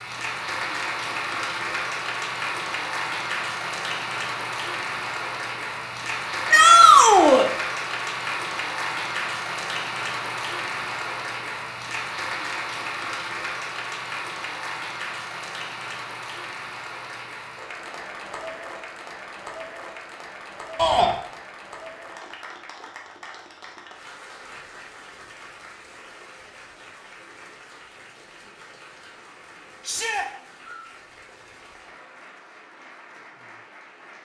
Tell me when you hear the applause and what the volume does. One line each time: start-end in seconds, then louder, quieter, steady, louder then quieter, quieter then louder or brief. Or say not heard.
0.0-34.2 quieter.